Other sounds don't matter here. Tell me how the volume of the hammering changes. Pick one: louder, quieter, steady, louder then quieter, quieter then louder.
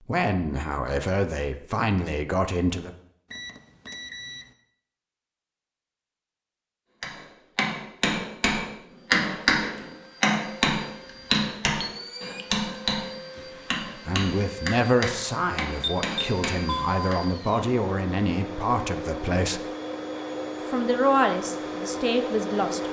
quieter.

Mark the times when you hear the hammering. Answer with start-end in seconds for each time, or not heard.
7.0-17.2.